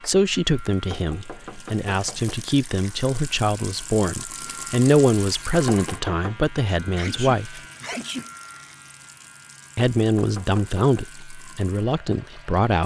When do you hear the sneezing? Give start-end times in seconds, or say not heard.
7.0-8.3.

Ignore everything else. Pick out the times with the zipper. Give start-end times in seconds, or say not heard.
not heard.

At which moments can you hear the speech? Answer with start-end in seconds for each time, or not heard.
0.1-7.6, 9.8-12.8.